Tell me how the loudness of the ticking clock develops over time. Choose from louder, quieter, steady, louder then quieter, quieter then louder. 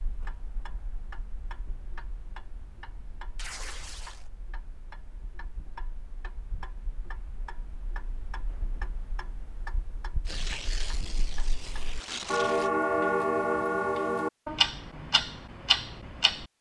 louder.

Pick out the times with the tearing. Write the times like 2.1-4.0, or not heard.
3.4-4.3, 10.2-12.7.